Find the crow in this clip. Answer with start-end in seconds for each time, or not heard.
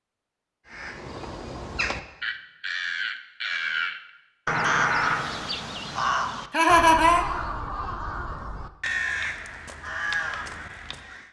0.7-11.2.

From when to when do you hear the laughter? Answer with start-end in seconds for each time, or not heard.
6.5-7.2.